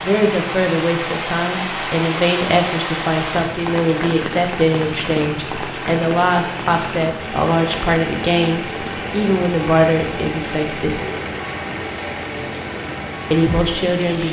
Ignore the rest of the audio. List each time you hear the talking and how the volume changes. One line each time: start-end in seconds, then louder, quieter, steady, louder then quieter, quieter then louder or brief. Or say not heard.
0.0-11.0 steady
13.3-14.2 brief.